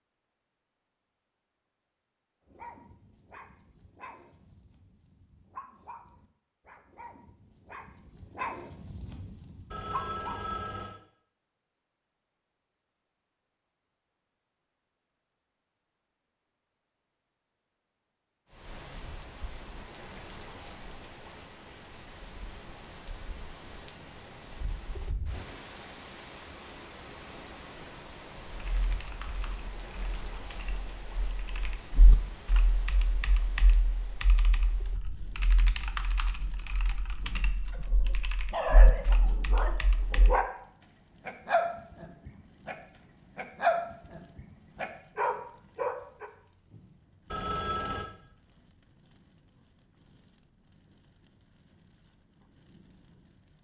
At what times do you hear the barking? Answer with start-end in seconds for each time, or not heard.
2.5-10.5, 37.7-40.5, 41.2-42.8, 43.4-46.3.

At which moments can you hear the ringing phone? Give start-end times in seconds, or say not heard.
9.7-10.9, 47.3-48.1.